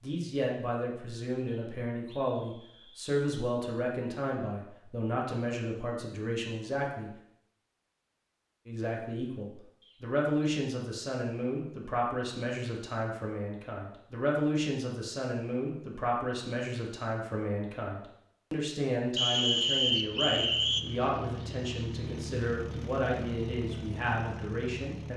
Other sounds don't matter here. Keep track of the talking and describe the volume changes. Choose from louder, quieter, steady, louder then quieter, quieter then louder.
steady.